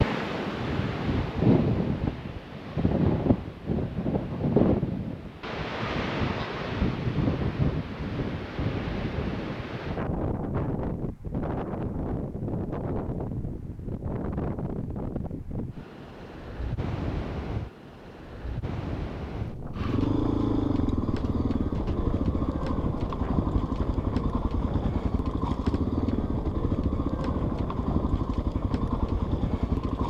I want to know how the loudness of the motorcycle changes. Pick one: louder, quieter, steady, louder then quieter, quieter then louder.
steady.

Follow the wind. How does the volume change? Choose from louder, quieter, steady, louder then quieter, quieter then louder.
quieter.